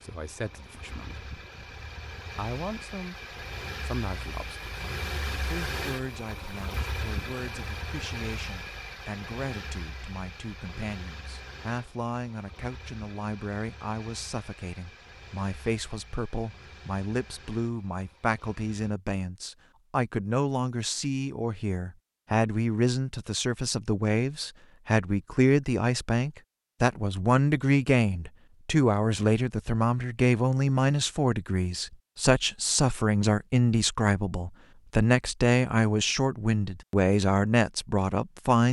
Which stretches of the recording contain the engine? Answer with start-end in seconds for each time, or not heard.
0.0-18.9.